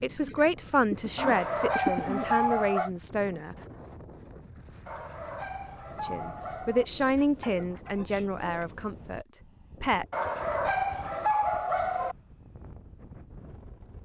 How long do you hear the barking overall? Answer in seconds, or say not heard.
6 s.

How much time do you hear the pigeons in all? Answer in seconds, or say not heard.
4 s.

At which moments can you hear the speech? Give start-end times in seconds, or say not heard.
0.0-3.5, 6.0-10.1.